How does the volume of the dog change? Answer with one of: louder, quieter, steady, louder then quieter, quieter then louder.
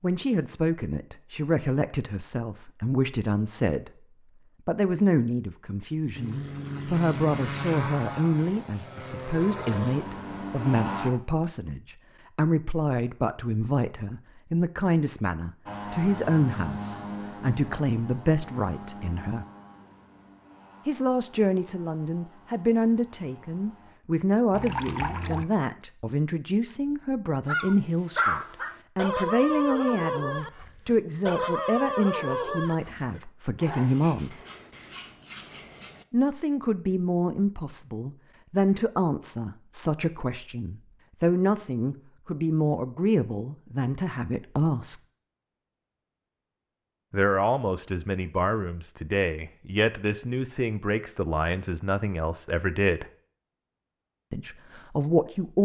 quieter.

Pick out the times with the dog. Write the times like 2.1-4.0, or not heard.
27.4-36.0.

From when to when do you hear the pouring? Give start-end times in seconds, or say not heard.
24.5-25.4.